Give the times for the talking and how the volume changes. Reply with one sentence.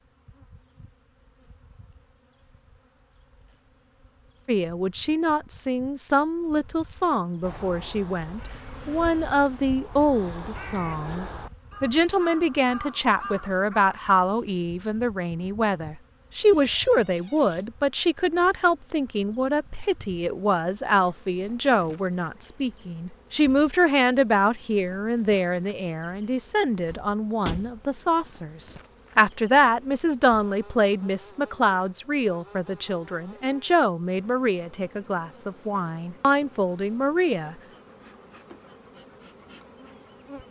You can hear the talking from 4.5 to 37.5 s, at a steady volume.